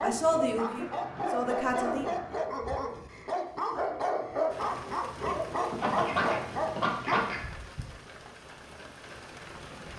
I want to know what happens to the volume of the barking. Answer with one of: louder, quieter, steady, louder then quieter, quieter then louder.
steady.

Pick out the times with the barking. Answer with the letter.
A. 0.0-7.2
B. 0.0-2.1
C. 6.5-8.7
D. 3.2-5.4
A.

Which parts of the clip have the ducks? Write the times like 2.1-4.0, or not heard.
0.6-2.5, 5.7-7.4.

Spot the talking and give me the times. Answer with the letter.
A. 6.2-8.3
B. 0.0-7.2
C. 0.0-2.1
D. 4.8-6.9
C.